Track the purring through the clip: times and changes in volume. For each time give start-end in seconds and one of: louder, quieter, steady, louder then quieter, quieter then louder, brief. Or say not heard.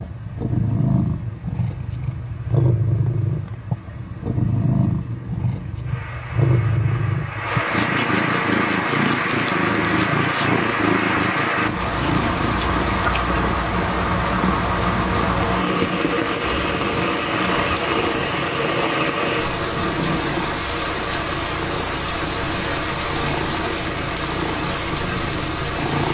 0.0-26.0 quieter.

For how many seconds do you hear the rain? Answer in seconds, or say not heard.
26 s.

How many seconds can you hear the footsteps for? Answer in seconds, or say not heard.
not heard.